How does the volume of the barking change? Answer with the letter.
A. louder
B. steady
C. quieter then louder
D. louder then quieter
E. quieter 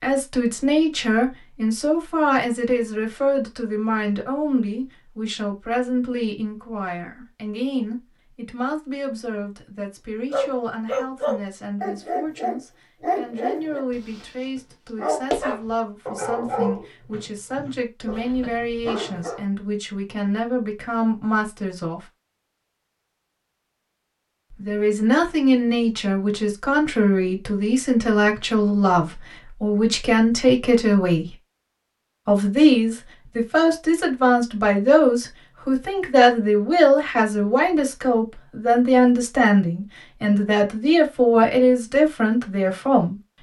E.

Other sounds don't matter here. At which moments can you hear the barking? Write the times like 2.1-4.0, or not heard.
10.3-19.4.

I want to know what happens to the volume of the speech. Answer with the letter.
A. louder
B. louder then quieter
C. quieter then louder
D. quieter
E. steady
C.